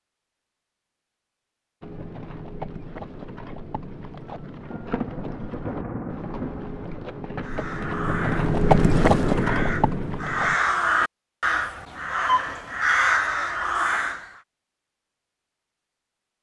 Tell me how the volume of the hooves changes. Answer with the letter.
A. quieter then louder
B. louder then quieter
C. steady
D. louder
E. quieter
D.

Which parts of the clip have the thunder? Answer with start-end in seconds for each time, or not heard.
4.7-7.2.